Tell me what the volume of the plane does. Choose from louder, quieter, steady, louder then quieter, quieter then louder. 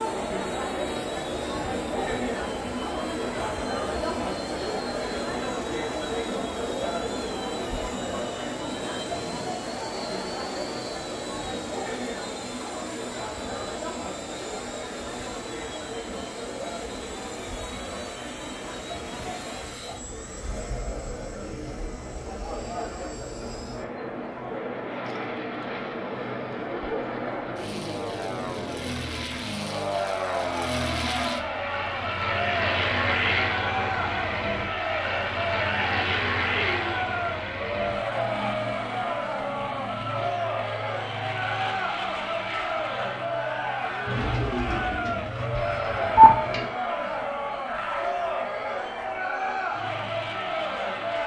louder then quieter.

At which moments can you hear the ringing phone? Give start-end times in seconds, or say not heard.
45.5-46.4.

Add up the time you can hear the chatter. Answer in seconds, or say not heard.
51 s.